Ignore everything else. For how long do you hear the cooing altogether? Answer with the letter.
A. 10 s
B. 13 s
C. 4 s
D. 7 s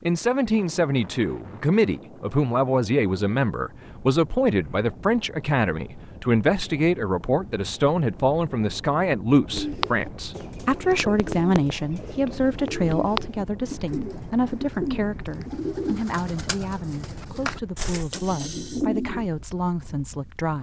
A.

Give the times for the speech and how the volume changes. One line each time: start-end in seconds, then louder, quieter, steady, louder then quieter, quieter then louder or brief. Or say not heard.
0.0-20.5 quieter.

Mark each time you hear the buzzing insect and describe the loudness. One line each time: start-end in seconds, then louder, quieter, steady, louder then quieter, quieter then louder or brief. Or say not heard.
not heard.